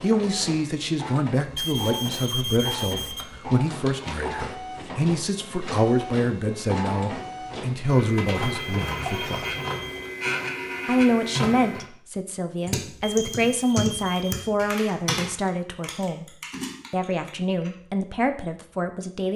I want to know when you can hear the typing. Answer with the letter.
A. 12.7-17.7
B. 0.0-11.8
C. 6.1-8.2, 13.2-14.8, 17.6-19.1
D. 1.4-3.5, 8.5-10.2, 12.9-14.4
A.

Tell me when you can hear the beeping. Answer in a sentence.
You can hear the beeping from 1.4 to 3.5 s, from 8.5 to 10.2 s and from 12.9 to 14.4 s.